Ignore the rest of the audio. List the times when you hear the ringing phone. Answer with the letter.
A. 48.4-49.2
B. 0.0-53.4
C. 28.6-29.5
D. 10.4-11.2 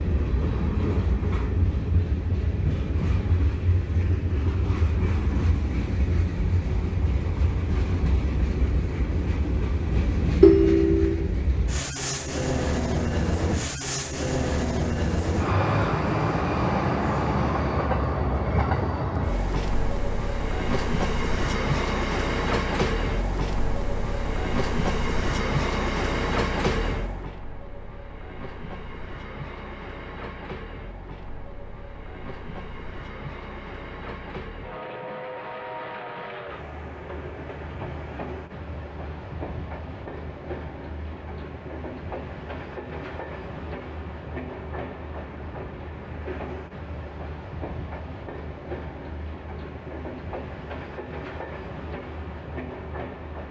D.